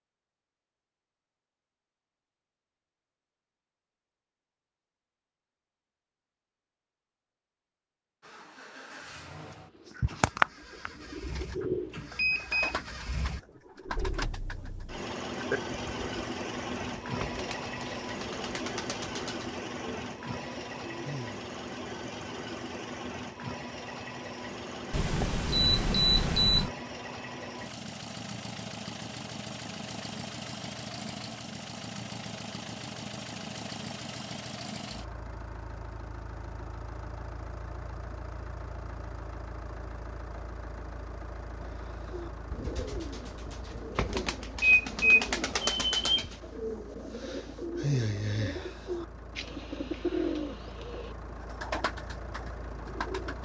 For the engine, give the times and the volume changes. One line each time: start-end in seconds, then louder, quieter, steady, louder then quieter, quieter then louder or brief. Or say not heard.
8.2-53.4 quieter.